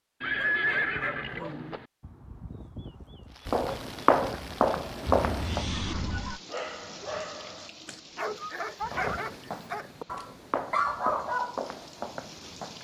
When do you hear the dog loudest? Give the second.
11 s.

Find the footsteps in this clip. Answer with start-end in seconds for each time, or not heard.
3.5-5.7, 8.9-12.8.